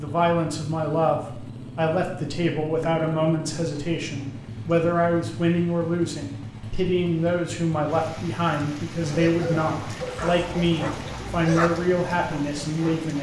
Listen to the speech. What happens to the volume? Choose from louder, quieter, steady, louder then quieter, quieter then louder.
steady.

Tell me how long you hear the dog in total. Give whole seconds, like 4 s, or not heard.
4 s.